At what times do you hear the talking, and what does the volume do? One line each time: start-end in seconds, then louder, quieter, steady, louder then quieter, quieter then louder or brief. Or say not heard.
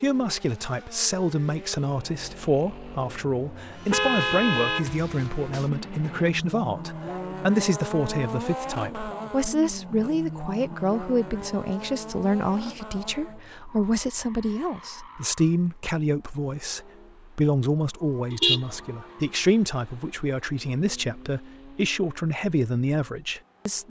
0.0-23.8 steady.